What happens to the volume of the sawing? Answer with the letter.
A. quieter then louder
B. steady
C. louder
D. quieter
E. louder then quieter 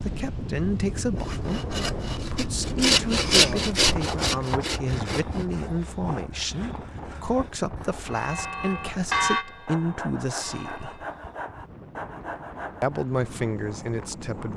A.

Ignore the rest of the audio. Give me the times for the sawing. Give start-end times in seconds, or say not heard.
1.1-13.2.